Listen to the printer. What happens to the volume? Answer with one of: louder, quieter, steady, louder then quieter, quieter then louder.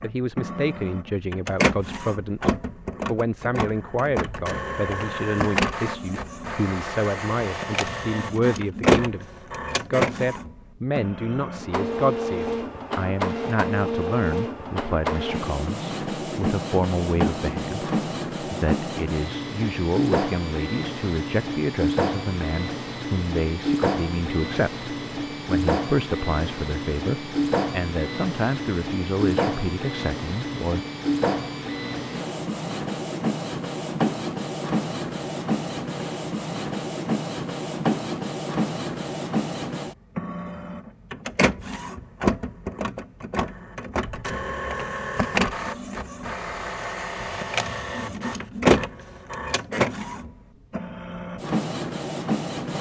steady.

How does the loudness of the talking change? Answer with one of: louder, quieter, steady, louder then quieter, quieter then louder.
steady.